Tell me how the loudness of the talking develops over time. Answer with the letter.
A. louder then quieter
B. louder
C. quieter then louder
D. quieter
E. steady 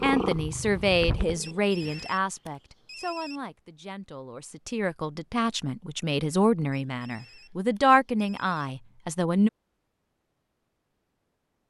C.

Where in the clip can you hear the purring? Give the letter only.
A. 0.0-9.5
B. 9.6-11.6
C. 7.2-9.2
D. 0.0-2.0
D.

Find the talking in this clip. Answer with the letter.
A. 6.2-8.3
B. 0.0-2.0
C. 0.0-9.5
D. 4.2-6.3
C.